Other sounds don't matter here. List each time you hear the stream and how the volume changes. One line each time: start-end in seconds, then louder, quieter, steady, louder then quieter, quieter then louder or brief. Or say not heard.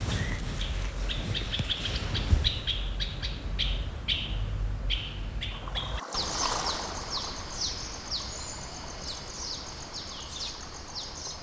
5.5-11.3 quieter.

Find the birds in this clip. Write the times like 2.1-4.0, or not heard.
0.0-11.3.